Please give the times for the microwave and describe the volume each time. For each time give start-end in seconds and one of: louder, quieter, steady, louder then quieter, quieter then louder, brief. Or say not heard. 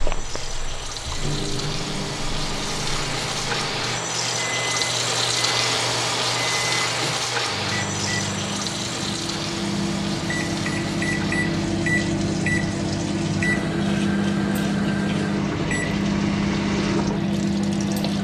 0.0-18.1 louder.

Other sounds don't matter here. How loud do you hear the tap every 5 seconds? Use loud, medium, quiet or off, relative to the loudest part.
loud, loud, medium, medium.